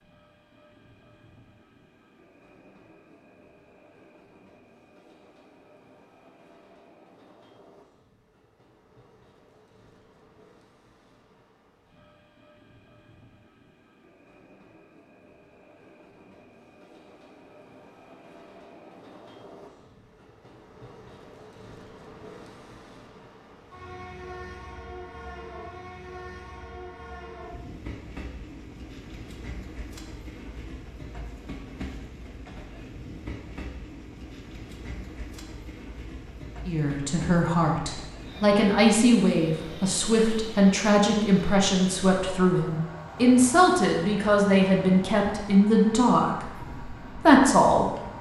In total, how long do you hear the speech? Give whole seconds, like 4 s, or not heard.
11 s.